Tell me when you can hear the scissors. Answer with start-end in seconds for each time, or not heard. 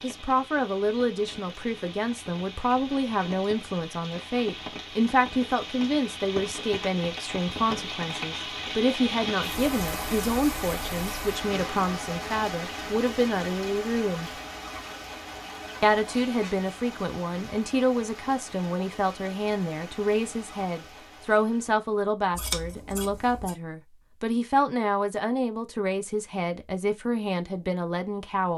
22.4-23.6.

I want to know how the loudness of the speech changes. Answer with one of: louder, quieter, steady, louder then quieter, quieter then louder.
steady.